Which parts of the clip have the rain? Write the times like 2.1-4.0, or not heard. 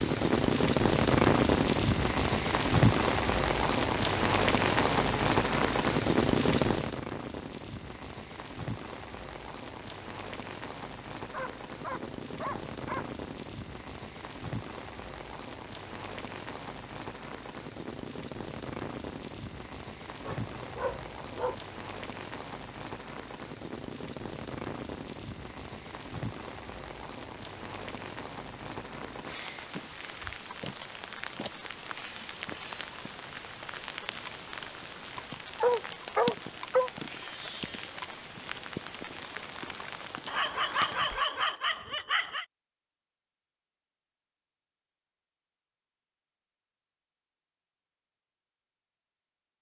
0.0-41.3.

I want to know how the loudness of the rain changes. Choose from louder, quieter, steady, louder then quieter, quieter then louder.
quieter.